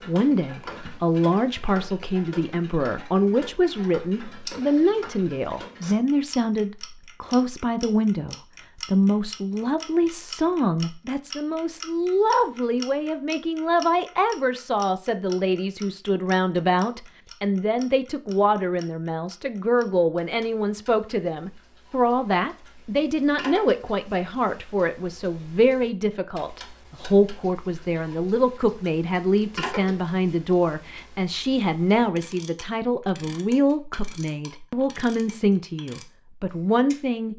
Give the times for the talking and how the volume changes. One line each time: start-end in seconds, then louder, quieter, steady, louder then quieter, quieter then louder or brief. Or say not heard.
0.1-37.3 steady.